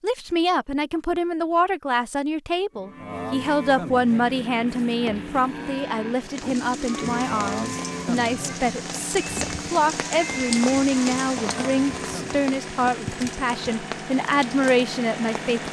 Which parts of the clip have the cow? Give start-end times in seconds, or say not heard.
2.7-12.6.